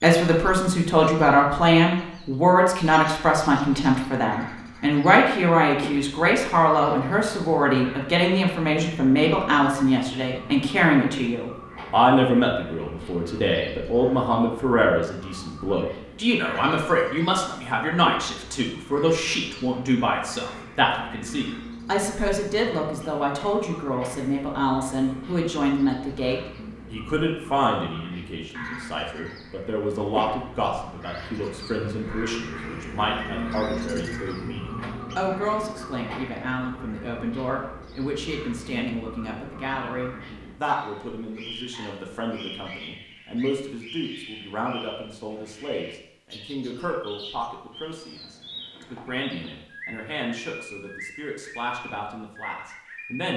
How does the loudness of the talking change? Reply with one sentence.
The volume of the talking goes down.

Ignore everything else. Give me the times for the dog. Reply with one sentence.
The dog can't be heard in this clip.